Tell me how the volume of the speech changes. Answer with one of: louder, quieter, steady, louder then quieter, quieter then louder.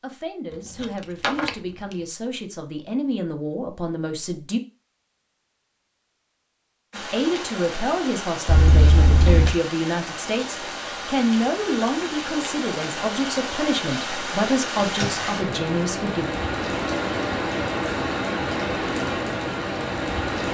louder.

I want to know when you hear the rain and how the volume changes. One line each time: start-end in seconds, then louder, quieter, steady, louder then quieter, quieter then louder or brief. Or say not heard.
6.9-20.4 louder.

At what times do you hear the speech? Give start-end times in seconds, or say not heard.
0.0-4.6, 6.9-16.2.